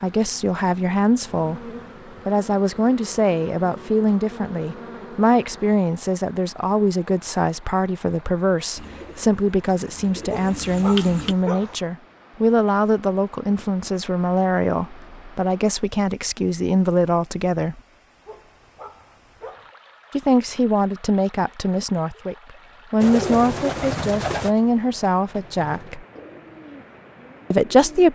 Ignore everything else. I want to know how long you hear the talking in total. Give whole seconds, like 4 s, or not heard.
24 s.